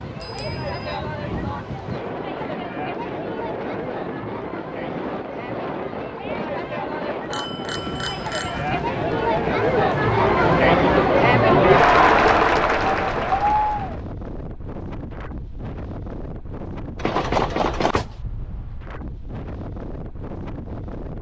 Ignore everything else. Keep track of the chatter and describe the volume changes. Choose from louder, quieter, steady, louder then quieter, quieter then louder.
louder.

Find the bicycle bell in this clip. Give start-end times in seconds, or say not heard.
0.2-1.0, 7.3-8.7, 16.9-18.1.